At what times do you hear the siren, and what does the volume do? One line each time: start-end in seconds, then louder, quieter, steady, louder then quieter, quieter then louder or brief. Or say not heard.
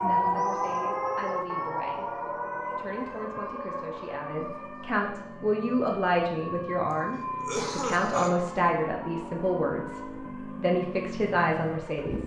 0.0-12.2 quieter.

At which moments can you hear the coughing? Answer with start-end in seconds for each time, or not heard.
7.3-8.4.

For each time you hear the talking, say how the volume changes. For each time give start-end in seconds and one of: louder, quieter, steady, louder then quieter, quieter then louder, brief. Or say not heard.
0.0-2.1 brief
2.8-12.2 louder.